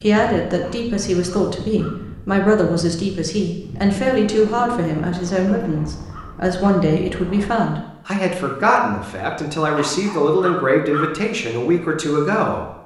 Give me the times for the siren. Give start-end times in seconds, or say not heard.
not heard.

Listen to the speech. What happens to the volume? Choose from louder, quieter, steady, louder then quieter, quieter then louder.
steady.